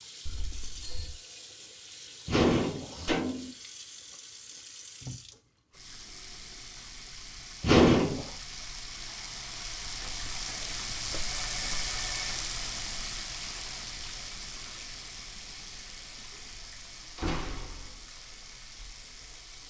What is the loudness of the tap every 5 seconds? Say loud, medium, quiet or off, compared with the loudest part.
medium, medium, loud, medium.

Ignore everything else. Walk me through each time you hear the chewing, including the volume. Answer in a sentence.
You can't hear the chewing here.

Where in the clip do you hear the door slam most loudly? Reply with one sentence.
The loudest moment of the door slam is at 8 seconds.